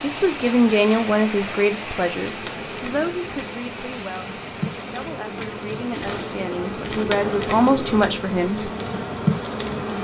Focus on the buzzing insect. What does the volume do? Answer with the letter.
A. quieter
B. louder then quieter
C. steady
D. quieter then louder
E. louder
E.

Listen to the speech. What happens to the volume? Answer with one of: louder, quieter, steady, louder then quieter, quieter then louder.
quieter then louder.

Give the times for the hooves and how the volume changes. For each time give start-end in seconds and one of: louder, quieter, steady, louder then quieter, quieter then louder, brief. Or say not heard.
not heard.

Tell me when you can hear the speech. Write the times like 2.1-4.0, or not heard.
0.0-8.7.